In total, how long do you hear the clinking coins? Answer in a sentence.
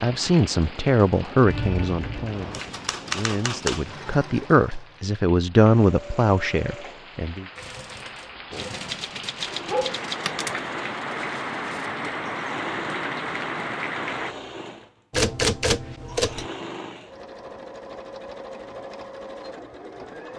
You can hear the clinking coins for 2 seconds altogether.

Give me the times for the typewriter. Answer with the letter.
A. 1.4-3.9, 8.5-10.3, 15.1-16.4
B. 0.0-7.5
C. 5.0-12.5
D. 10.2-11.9
A.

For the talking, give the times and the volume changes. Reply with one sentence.
You can hear the talking from 0.0 to 7.5 s, getting quieter then louder.